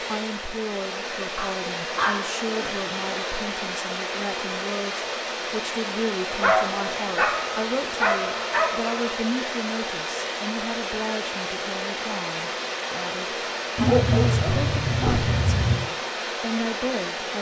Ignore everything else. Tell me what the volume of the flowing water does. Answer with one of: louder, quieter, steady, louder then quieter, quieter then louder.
steady.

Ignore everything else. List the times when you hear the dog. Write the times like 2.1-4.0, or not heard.
1.4-2.7, 6.4-9.2, 13.8-15.8.